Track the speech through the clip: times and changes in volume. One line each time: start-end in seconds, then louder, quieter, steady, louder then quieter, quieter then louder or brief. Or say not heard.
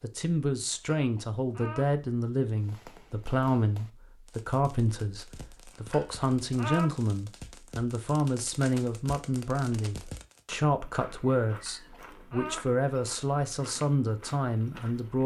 0.0-15.2 steady.